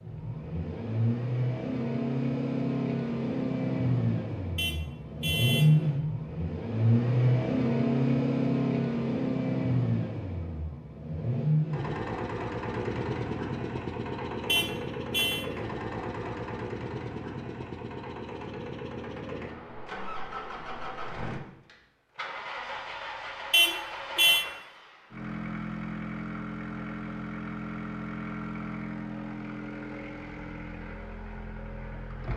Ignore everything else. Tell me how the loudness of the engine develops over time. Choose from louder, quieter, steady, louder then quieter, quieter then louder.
quieter.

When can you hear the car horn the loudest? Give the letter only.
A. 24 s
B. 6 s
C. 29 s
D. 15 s
A.